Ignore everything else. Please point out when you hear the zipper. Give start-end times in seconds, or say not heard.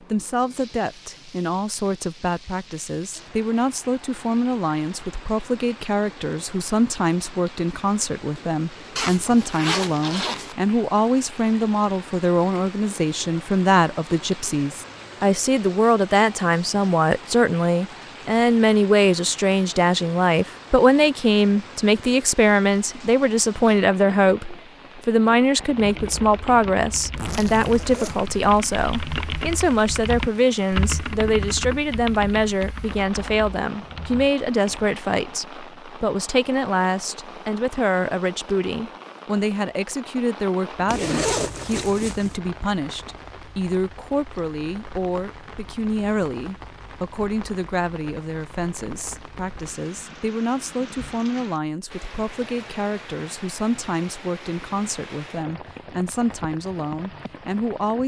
8.9-10.6, 27.1-28.3, 40.9-42.4.